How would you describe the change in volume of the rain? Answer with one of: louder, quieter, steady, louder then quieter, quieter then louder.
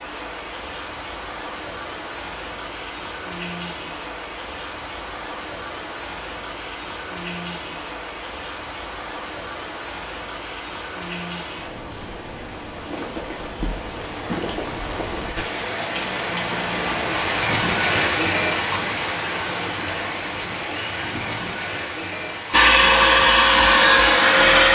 louder.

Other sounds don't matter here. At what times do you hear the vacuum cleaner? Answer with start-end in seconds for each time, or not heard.
22.5-24.7.